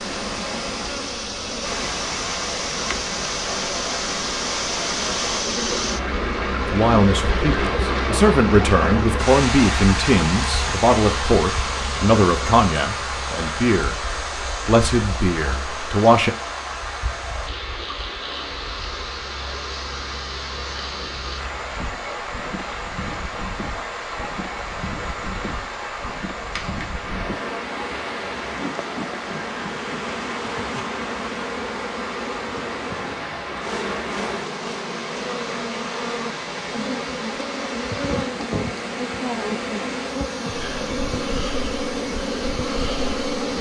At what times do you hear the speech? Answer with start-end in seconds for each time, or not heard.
6.7-16.3.